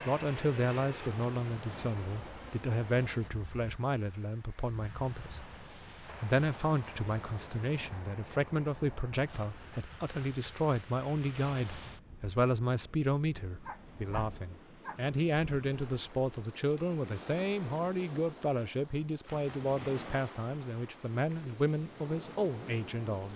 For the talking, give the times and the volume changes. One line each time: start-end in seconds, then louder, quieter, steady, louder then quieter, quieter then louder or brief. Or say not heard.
0.1-23.3 steady.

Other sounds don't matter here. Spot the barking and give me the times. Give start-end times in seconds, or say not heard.
13.7-15.2.